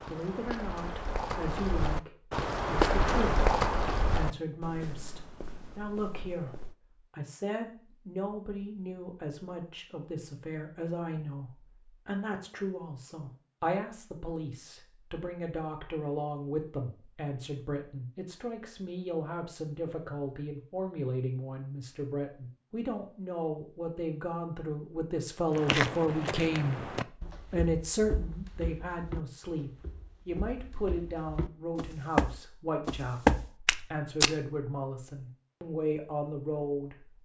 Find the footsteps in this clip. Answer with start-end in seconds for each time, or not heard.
0.0-6.8, 25.5-34.3.